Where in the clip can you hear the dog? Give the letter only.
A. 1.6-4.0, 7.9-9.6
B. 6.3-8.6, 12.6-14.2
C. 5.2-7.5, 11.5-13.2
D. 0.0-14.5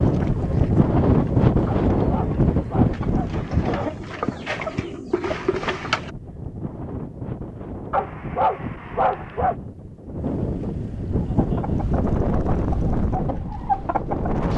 A.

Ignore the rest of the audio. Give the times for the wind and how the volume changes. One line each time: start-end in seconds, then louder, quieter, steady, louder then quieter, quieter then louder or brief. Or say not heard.
0.0-14.5 quieter then louder.